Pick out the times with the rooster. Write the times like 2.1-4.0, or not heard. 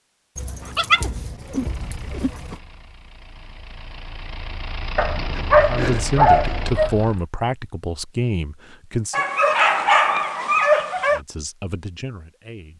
not heard.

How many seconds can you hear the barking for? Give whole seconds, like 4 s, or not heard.
6 s.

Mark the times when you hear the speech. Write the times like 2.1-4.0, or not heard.
5.7-9.2, 11.1-12.7.